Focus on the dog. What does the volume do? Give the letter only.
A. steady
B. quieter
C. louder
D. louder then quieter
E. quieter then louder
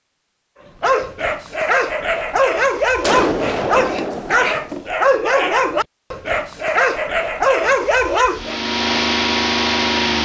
A.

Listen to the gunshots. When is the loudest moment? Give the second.
3 s.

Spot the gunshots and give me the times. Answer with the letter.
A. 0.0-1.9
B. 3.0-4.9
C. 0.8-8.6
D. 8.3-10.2
B.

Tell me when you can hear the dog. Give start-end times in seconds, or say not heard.
0.8-8.6.